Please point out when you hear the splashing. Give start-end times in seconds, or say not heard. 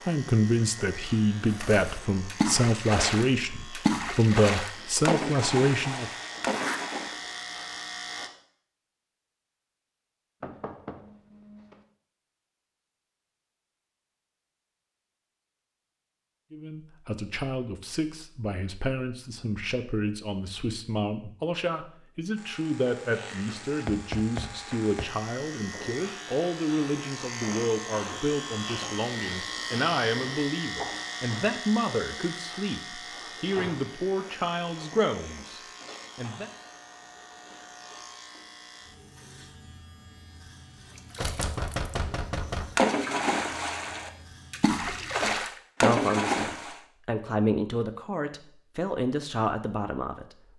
1.4-7.3, 41.1-42.0, 42.8-46.8.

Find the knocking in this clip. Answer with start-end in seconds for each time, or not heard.
10.4-11.8, 23.9-25.1, 41.2-42.8.